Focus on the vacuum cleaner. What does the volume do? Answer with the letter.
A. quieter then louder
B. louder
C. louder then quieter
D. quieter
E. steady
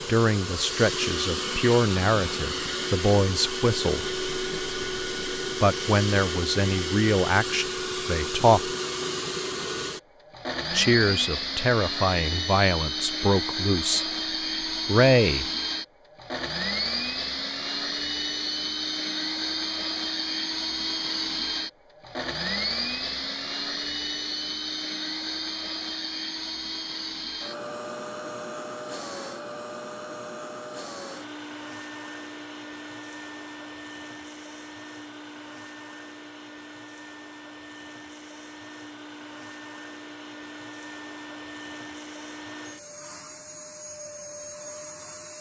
D.